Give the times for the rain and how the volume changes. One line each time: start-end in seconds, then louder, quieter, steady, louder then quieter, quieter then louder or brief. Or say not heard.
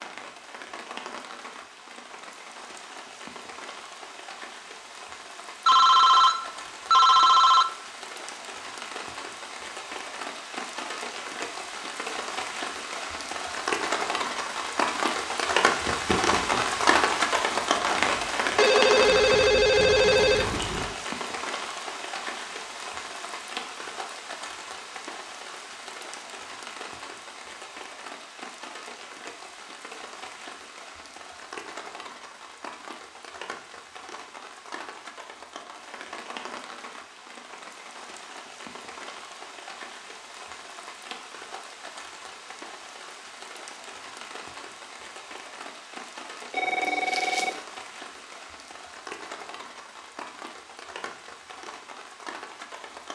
0.0-53.1 louder then quieter.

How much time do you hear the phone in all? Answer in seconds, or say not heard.
5 s.